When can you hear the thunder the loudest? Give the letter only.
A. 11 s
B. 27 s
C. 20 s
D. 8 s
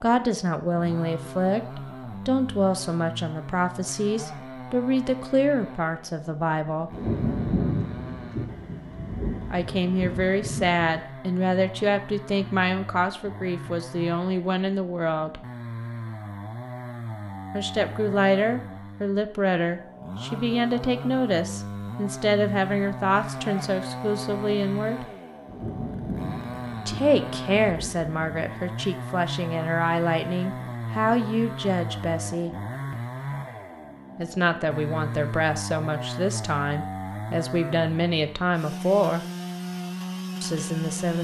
D.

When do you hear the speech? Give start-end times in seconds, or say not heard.
0.0-6.9, 9.5-15.4, 17.5-25.1, 26.9-32.5, 34.1-39.2, 40.4-41.1.